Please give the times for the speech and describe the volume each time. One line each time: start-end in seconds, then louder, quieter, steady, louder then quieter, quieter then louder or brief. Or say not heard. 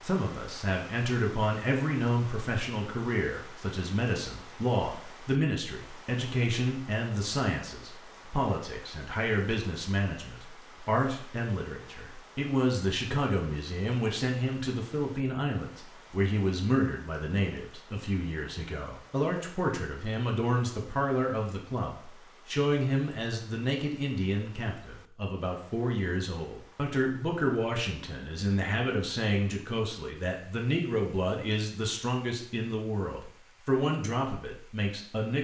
0.0-35.4 steady.